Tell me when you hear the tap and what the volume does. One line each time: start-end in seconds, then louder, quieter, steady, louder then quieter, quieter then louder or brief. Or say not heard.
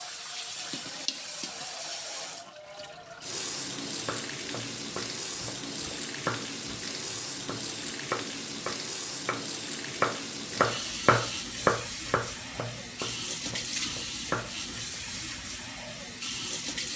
0.0-16.9 steady.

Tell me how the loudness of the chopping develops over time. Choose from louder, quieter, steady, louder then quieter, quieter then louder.
louder then quieter.